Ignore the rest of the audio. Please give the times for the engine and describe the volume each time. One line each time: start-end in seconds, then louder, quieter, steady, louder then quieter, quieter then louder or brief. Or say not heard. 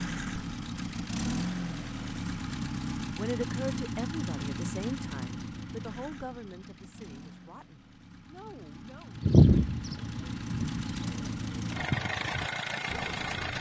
0.0-13.5 quieter then louder.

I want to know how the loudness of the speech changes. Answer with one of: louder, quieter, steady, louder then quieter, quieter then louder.
quieter.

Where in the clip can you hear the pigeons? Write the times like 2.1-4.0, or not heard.
9.2-13.5.